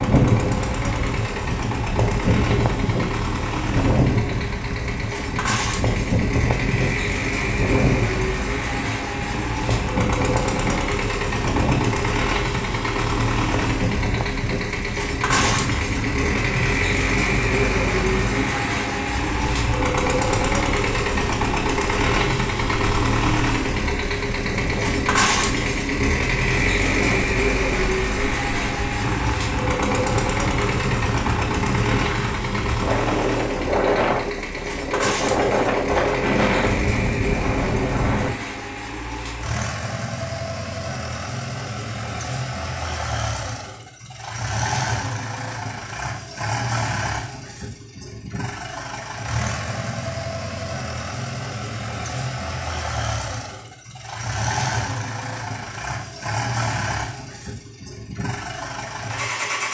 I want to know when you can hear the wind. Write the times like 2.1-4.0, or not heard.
0.0-38.3.